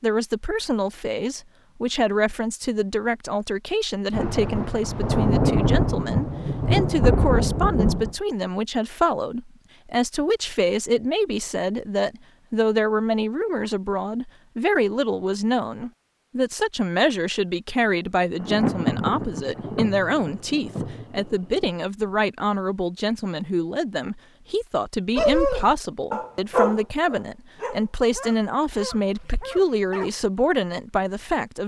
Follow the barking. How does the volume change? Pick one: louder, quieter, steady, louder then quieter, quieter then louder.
louder then quieter.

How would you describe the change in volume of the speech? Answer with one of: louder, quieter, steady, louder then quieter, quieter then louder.
steady.